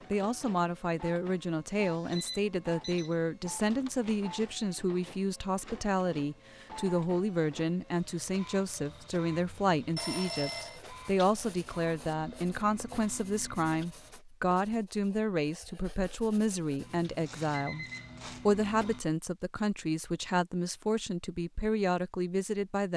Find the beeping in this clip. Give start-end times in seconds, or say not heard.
1.8-3.1, 9.9-10.8, 16.8-18.5.